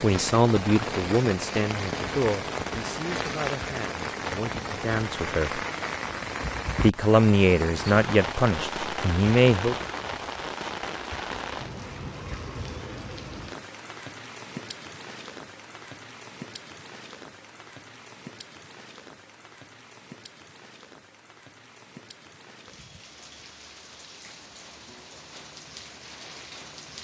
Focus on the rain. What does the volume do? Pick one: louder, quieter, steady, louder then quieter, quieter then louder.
quieter.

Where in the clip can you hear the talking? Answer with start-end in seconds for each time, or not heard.
0.0-5.7, 6.8-9.8.